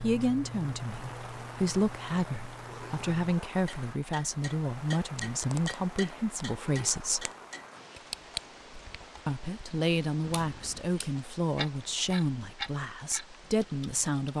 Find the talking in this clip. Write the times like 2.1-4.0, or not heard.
0.0-7.3, 9.2-14.3.